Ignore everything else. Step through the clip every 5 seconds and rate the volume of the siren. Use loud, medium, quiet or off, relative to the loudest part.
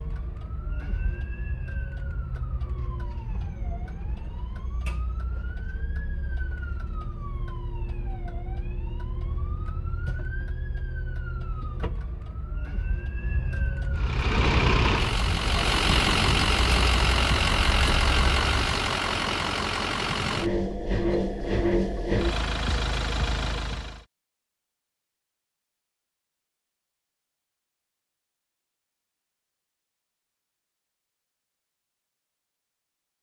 medium, medium, loud, loud, off, off, off.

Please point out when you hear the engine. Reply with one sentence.
The engine can be heard from 13.9 to 24.1 s.